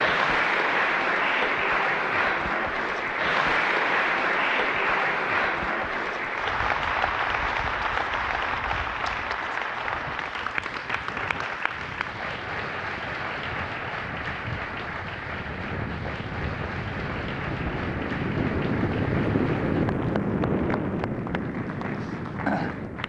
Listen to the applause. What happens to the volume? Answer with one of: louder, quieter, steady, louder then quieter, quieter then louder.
quieter.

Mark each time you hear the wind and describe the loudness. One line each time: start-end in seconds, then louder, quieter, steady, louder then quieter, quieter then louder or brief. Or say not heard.
6.4-23.0 louder.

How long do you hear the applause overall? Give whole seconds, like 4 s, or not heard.
23 s.